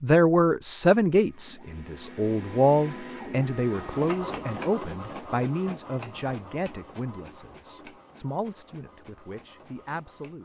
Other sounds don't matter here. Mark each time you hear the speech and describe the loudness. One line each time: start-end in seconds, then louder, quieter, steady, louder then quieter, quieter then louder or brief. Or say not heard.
0.0-10.3 quieter.